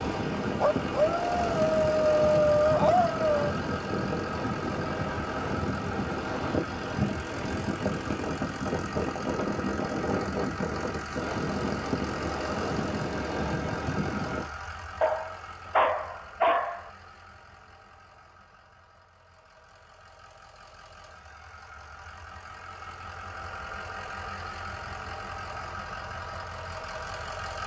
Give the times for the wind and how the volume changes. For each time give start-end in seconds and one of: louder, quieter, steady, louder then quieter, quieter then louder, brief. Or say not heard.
0.0-14.5 steady.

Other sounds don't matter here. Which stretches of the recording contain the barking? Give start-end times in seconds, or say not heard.
0.6-3.5, 15.0-16.9.